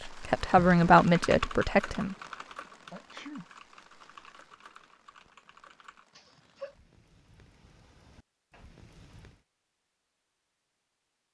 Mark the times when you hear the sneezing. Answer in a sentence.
The sneezing can be heard from 2.9 to 3.5 s and from 6.2 to 6.8 s.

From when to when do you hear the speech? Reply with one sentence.
You can hear the speech from 0.0 to 2.1 s.